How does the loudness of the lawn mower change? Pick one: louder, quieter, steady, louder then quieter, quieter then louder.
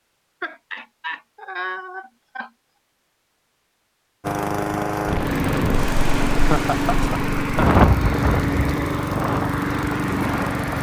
steady.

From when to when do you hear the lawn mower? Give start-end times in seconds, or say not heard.
4.2-10.7.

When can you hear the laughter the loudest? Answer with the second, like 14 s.
7 s.